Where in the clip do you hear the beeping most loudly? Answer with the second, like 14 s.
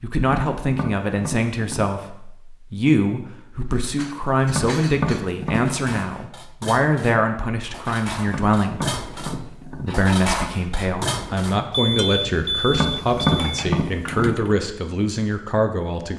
12 s.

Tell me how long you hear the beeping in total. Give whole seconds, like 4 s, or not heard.
2 s.